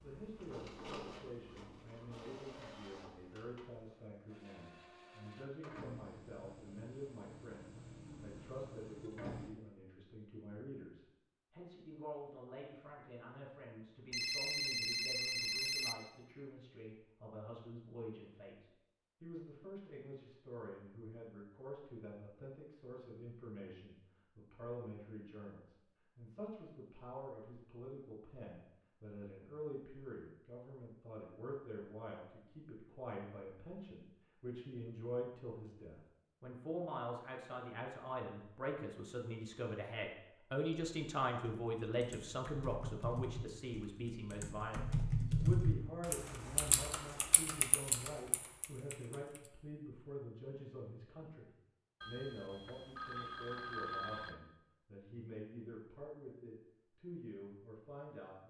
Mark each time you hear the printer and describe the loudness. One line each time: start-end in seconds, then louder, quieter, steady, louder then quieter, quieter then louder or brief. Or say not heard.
0.0-9.6 quieter then louder.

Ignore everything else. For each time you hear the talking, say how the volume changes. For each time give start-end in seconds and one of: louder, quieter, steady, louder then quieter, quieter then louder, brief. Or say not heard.
0.0-58.4 louder then quieter.